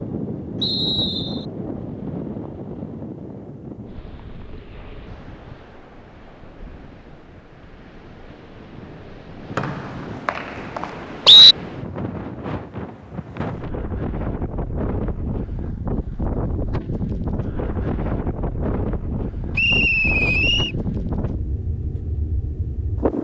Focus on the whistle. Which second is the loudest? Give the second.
11 s.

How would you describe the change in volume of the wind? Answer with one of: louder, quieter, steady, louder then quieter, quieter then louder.
quieter then louder.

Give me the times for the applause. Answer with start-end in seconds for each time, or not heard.
not heard.